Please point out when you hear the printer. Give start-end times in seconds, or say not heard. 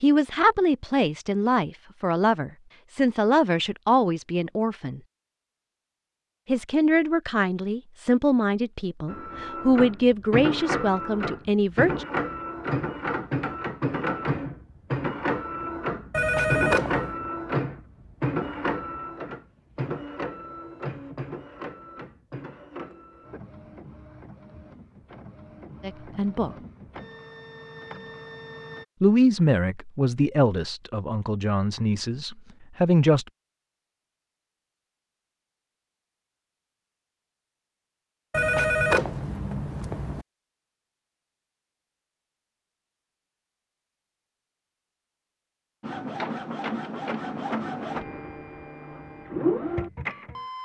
9.1-28.9, 45.8-50.6.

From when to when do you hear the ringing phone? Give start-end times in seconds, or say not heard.
16.1-17.1, 38.3-40.2.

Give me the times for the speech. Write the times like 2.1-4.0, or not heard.
0.0-5.0, 6.5-12.1, 25.8-26.6, 29.0-33.2.